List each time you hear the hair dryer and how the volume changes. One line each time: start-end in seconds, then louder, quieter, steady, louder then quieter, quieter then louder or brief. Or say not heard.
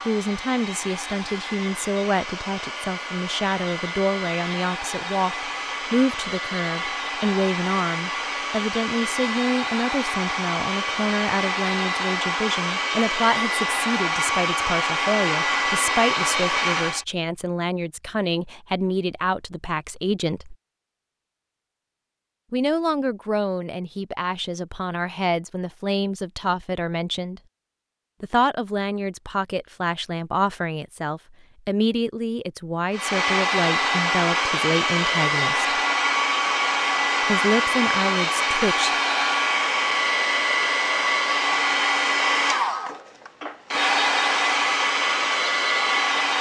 0.0-17.1 louder
32.9-46.3 steady.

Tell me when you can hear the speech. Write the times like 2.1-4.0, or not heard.
0.1-20.6, 22.5-27.4, 28.2-35.7, 37.2-38.9.